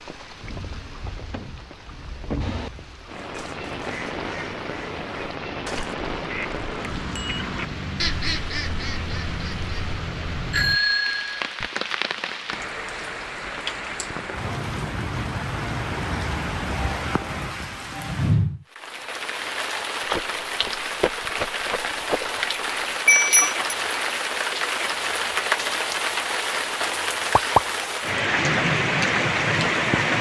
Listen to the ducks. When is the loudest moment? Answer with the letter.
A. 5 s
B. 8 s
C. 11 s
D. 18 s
B.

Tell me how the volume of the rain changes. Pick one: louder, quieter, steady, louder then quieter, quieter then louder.
louder.